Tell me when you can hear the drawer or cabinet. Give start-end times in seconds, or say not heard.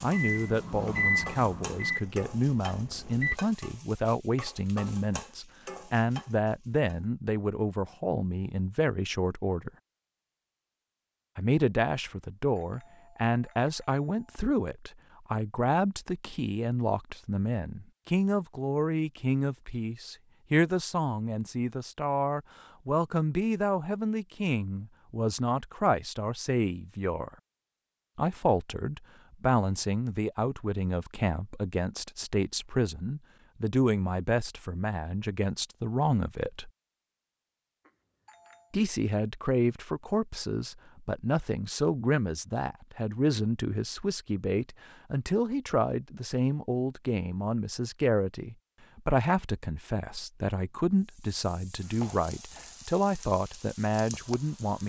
not heard.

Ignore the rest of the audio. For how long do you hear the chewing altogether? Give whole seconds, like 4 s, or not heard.
not heard.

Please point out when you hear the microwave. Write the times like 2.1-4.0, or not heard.
0.0-3.4.